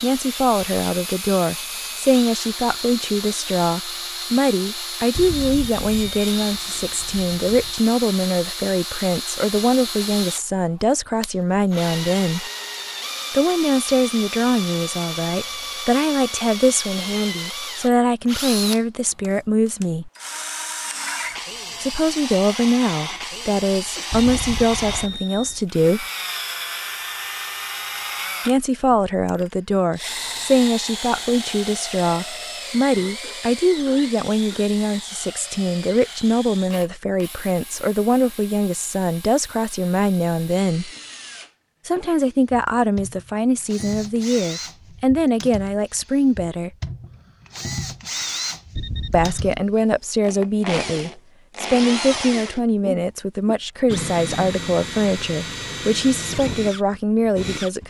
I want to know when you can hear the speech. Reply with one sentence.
You can hear the speech from 0.0 to 12.5 s, from 13.3 to 20.1 s, from 21.8 to 26.1 s, from 28.4 to 40.9 s, from 41.9 to 46.7 s and from 49.1 to 57.8 s.